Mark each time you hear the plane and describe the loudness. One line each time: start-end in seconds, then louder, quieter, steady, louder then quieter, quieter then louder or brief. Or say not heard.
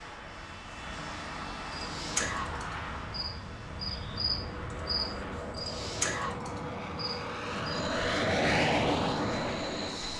0.0-10.1 louder.